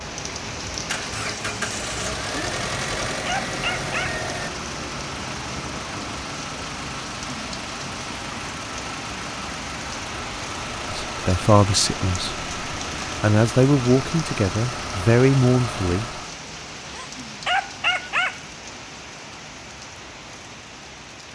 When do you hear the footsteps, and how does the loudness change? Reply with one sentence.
You can't hear the footsteps here.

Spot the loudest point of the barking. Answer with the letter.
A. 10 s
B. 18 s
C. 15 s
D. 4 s
B.